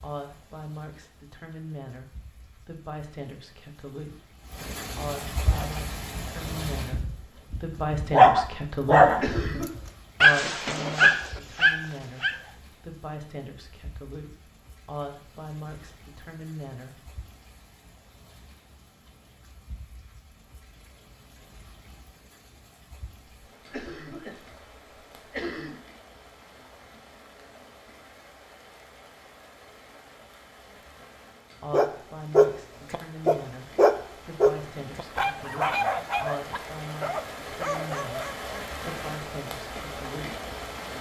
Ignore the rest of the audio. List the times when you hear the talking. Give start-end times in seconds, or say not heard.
0.0-4.3, 5.0-9.2, 10.2-17.1, 31.6-40.5.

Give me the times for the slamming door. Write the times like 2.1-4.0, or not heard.
not heard.